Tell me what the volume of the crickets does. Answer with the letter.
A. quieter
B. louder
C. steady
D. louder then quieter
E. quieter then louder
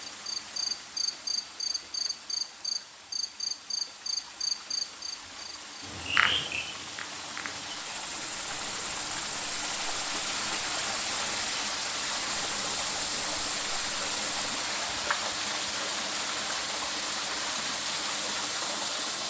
A.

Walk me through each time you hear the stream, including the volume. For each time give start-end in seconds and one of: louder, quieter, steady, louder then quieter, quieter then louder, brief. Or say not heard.
0.0-19.2 louder.